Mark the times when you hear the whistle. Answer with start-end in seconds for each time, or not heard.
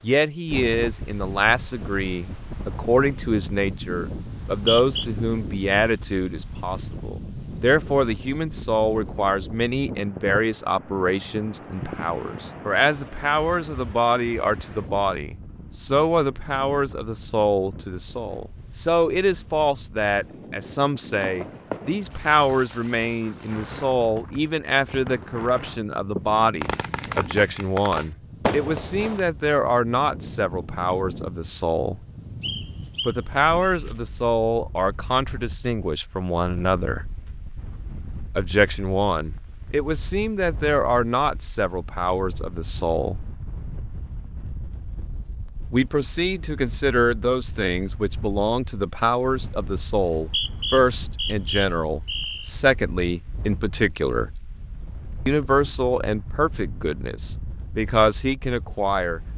4.2-5.0, 32.4-33.8, 50.0-52.5.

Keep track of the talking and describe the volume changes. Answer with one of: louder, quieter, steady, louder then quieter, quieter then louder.
steady.